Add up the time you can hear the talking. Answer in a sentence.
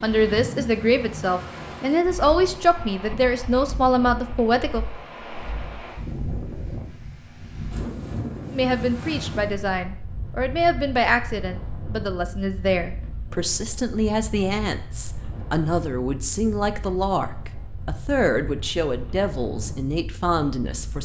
The talking can be heard for 17 seconds in total.